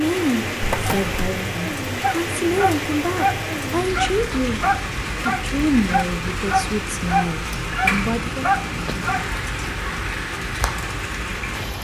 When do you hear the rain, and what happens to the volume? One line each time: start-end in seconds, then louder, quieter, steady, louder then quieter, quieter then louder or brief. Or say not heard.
0.0-11.7 steady.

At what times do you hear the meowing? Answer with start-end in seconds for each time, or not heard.
0.6-1.3, 7.5-9.2.